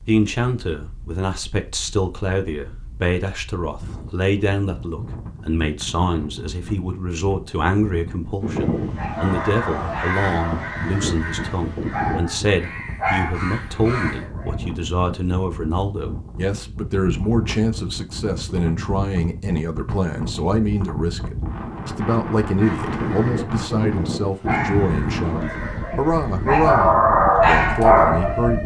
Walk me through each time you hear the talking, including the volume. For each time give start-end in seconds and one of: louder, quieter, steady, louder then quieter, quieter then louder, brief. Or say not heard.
0.1-28.6 steady.